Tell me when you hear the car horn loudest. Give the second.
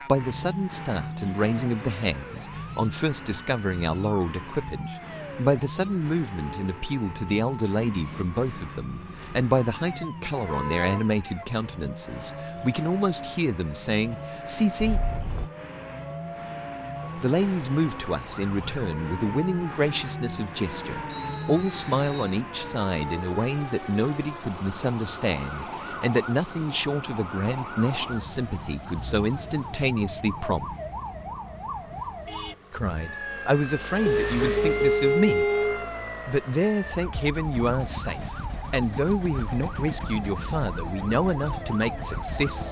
35 s.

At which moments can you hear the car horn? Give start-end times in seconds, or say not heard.
10.4-11.1, 14.8-15.5, 34.0-35.9.